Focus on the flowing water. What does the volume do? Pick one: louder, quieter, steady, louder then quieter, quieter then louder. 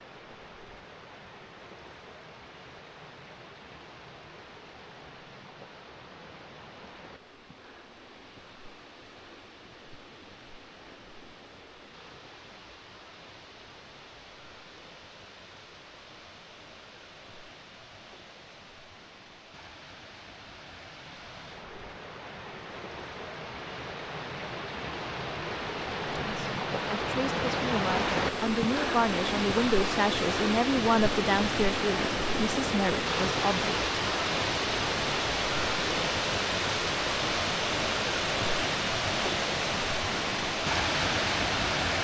louder.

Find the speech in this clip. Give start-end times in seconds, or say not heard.
26.2-34.0.